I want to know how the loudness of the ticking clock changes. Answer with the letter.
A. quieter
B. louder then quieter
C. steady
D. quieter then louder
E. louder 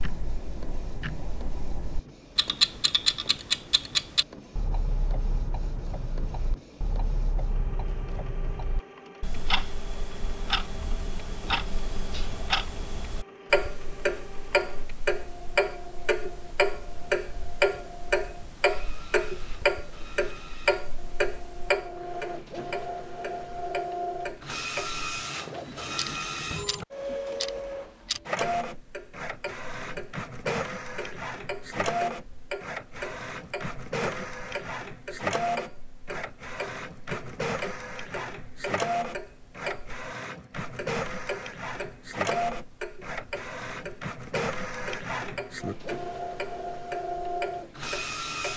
A.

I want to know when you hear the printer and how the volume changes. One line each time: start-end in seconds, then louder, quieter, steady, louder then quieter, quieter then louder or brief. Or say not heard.
0.0-48.5 louder.